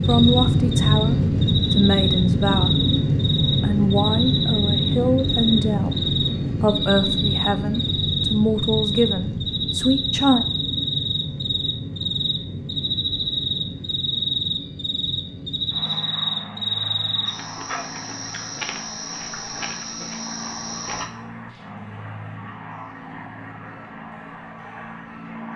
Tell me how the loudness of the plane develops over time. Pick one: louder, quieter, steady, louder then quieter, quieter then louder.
quieter.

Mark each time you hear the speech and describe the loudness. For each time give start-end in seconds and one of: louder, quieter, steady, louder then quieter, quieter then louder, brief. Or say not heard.
0.1-10.4 steady.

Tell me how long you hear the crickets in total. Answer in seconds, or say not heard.
21 s.